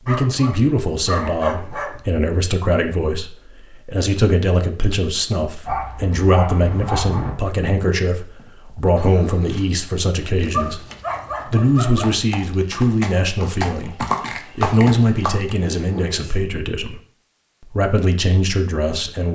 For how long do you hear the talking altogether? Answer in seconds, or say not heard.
18 s.